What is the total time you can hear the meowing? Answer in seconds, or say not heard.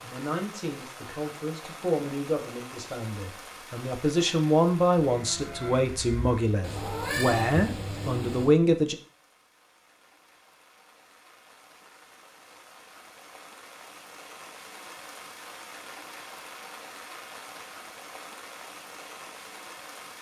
2 s.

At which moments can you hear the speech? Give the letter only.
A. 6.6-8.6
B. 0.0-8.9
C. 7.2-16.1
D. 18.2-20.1
B.